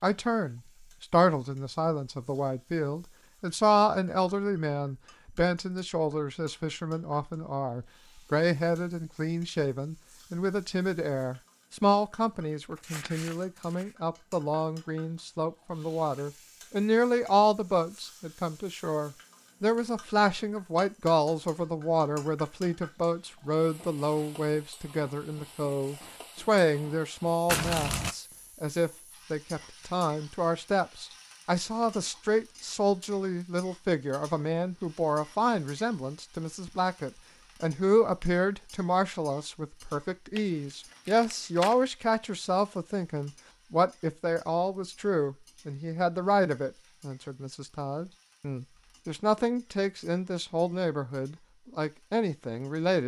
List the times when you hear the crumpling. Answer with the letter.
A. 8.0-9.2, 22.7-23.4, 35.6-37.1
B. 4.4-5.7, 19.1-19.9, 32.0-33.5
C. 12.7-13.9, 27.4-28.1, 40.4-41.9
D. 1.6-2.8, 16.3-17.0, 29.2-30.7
C.